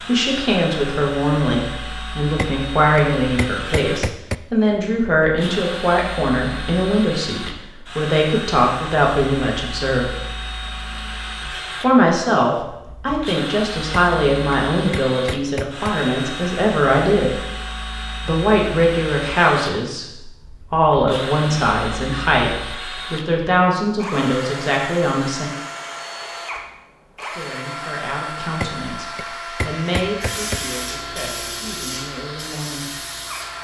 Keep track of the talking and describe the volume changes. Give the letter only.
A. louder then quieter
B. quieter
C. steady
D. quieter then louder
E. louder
B.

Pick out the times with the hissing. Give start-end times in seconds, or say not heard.
30.1-33.5.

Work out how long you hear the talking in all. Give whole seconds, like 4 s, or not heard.
29 s.